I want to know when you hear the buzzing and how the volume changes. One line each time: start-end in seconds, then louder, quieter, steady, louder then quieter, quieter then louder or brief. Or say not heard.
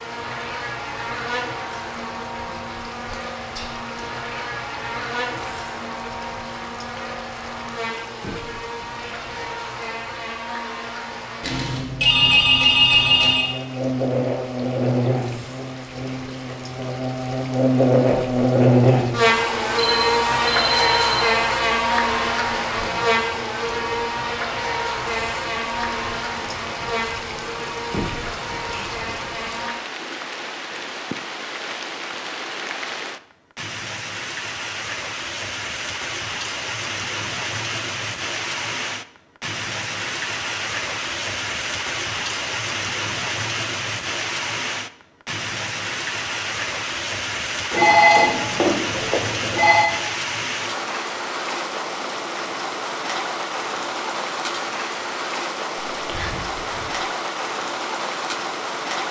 0.0-29.8 louder then quieter.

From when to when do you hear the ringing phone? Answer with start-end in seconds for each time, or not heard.
11.4-13.5, 19.8-21.4, 47.7-49.9.